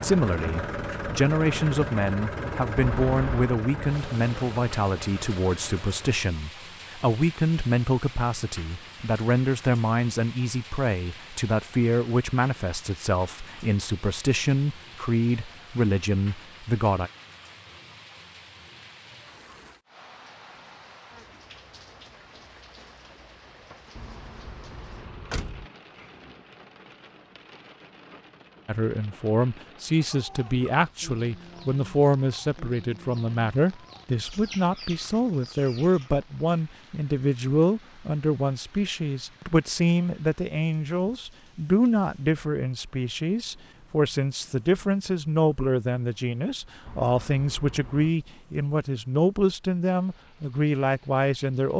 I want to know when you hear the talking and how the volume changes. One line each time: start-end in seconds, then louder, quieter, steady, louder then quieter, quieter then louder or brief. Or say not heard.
0.0-17.1 steady
28.6-51.7 steady.